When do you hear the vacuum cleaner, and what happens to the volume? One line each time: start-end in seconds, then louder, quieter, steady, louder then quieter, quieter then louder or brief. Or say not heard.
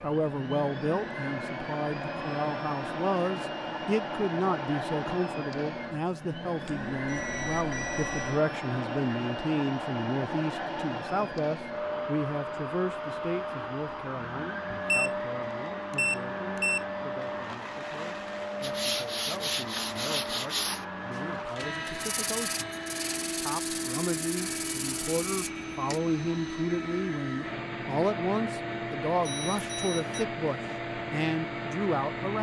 0.0-32.3 steady.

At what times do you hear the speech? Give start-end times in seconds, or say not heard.
0.0-22.6, 23.4-32.3.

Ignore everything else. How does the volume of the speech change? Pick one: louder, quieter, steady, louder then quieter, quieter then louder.
quieter then louder.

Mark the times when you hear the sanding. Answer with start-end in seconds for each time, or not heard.
18.6-26.0.